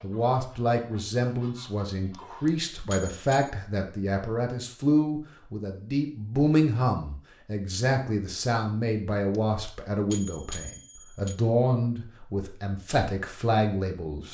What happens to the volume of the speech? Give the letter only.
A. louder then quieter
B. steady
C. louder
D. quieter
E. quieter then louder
B.